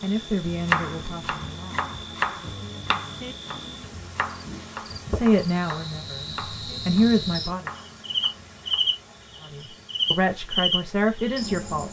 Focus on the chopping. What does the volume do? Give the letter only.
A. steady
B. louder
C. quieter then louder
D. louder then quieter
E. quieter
E.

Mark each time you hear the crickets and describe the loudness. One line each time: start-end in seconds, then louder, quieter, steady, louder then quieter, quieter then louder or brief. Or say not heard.
0.0-11.8 louder.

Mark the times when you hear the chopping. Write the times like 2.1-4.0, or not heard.
0.3-8.9.